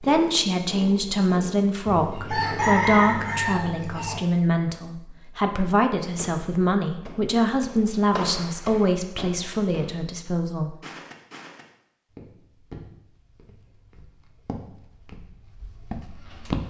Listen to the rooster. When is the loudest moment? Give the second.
3 s.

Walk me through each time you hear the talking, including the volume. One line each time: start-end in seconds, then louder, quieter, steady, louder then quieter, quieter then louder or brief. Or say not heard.
0.0-10.8 steady.